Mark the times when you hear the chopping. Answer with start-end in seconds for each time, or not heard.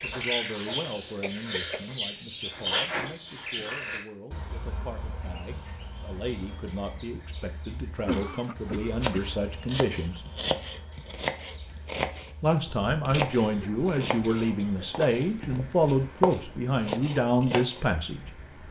9.0-17.9.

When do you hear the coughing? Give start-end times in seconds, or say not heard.
1.2-1.9, 8.0-9.3, 13.3-14.9.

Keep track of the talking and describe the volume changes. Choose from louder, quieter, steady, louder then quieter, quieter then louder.
louder.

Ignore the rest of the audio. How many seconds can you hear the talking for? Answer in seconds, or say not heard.
16 s.